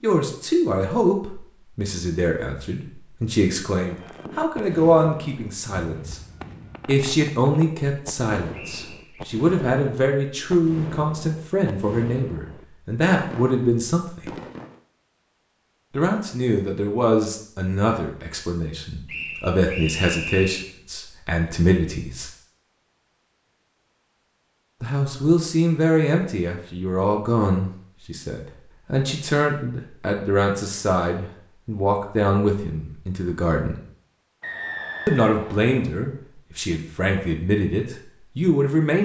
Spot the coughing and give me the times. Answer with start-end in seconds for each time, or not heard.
not heard.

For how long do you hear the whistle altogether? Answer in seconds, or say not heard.
4 s.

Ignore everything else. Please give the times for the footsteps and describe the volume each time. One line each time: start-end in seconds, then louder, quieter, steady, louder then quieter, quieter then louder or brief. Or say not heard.
not heard.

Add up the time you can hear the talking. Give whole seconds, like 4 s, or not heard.
33 s.